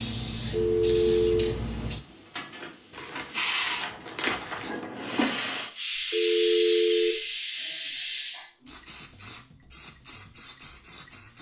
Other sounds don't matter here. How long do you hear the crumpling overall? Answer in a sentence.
The crumpling can be heard for 2 seconds in total.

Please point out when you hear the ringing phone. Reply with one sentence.
You can hear the ringing phone from 0.3 to 1.6 s and from 6.0 to 7.2 s.